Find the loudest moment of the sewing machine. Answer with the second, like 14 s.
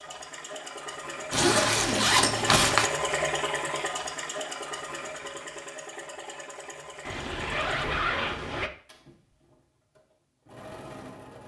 3 s.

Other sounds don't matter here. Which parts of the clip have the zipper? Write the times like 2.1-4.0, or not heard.
1.3-2.9, 7.0-8.7.